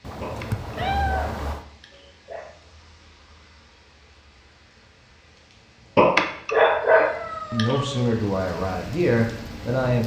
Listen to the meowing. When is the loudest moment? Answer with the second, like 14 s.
1 s.